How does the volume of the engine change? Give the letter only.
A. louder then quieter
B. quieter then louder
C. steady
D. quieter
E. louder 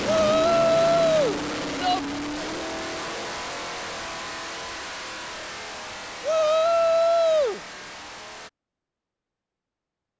D.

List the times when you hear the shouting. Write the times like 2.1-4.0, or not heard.
0.0-2.0, 6.2-7.6.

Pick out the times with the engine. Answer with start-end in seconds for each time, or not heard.
0.0-8.5.